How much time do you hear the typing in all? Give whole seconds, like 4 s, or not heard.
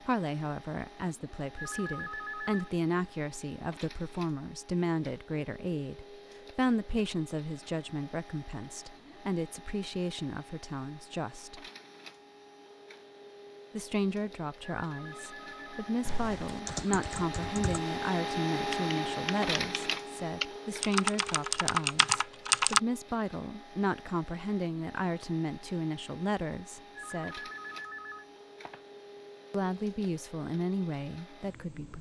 7 s.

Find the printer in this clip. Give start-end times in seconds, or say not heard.
0.0-31.9.